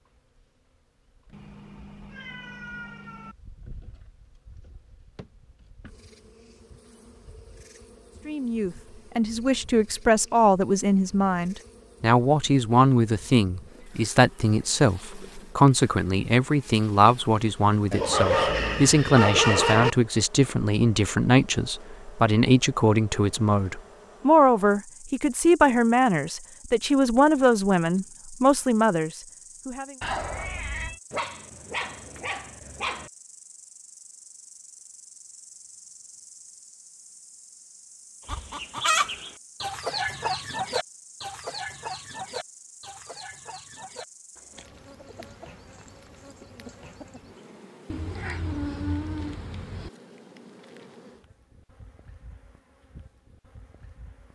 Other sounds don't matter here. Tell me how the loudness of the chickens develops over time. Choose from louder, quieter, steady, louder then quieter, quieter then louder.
quieter.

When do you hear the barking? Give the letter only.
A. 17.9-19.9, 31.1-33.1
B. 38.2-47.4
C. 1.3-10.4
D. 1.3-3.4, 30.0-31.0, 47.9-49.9
A.